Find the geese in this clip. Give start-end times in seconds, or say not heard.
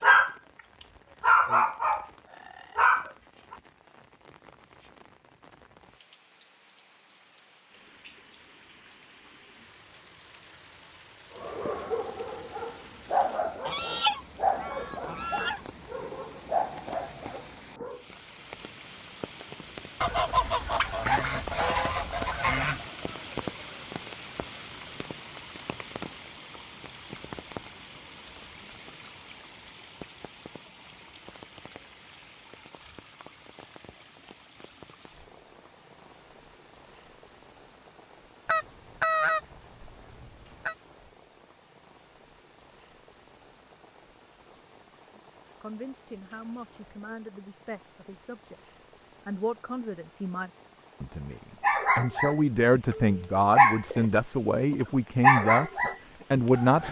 13.7-15.6, 20.0-22.9, 38.5-40.8.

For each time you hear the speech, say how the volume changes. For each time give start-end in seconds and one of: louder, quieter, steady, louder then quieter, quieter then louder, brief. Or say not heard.
45.1-56.8 louder.